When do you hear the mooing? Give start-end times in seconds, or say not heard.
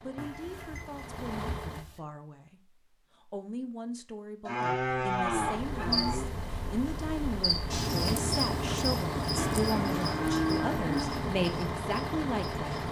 0.1-2.0, 4.5-6.2, 9.3-11.2.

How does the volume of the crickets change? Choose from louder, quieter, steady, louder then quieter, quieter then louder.
louder then quieter.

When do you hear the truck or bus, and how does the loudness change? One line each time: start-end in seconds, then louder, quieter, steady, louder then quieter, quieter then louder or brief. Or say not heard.
0.0-1.9 brief
5.3-12.8 louder.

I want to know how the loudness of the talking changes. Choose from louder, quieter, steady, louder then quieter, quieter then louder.
louder.